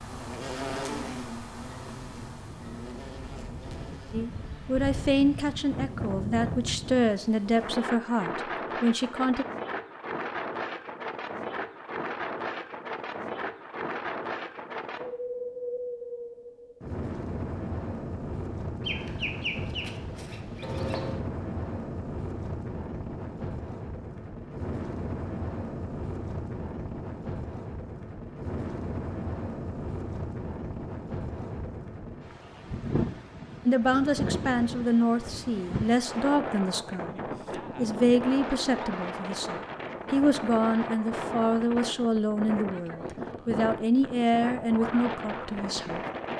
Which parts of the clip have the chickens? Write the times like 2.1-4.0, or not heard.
18.8-21.2.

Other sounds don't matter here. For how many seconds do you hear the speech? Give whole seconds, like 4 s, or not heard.
18 s.